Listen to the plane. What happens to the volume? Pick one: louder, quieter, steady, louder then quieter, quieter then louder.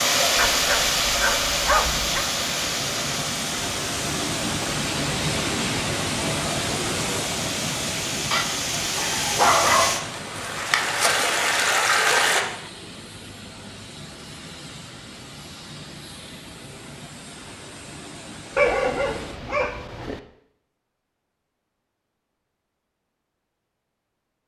louder then quieter.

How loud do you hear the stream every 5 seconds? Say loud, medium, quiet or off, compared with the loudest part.
loud, medium, loud, off, off.